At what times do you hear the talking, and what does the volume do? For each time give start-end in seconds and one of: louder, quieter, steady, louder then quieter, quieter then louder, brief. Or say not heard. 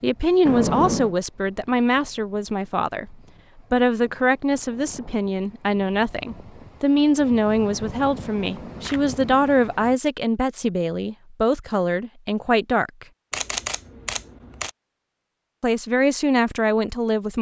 0.0-13.1 steady
15.6-17.3 brief.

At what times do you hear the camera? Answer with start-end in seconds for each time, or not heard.
0.5-1.1, 7.7-9.5, 13.3-14.7.